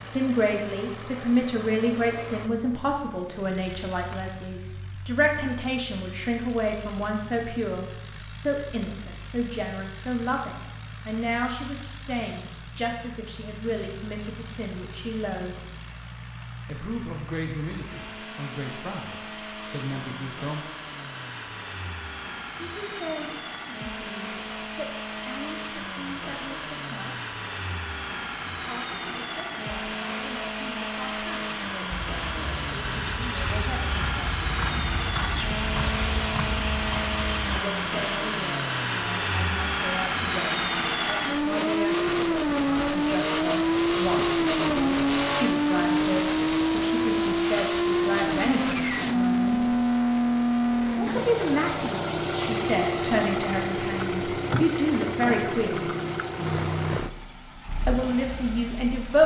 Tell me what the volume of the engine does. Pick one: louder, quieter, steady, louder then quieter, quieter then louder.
louder.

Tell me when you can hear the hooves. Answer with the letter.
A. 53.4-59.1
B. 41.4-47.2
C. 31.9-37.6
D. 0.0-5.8
C.